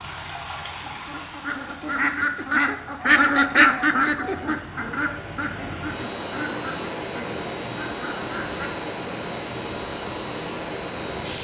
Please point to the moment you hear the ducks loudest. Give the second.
4 s.